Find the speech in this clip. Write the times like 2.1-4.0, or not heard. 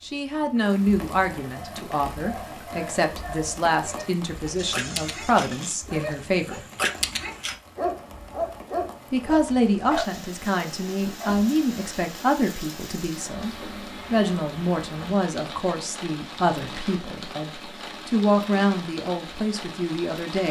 0.0-6.7, 9.1-20.4.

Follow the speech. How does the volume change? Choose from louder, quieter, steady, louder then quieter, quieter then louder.
steady.